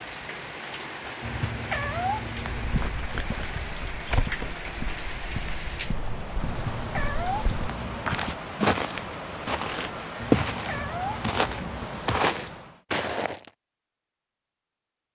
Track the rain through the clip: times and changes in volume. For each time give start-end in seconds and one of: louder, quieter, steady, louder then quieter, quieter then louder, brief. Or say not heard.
0.0-12.8 steady.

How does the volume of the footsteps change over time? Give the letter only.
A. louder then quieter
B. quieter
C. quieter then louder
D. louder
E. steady
D.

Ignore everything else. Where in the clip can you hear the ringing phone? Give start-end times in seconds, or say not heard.
not heard.